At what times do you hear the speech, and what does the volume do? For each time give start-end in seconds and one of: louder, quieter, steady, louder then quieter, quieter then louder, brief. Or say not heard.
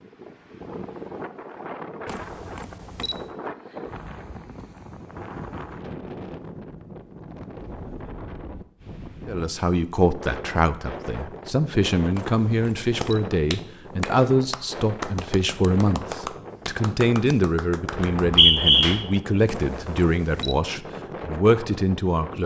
9.2-22.4 steady.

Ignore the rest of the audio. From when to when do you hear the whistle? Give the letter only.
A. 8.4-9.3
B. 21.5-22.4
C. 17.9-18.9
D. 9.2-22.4
C.